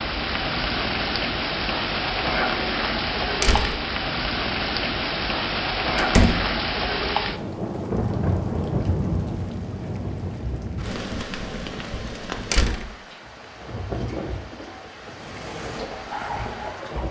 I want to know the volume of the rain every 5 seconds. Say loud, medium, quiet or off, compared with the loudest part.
loud, loud, medium, medium.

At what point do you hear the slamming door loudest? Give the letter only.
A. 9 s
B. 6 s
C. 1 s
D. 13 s
B.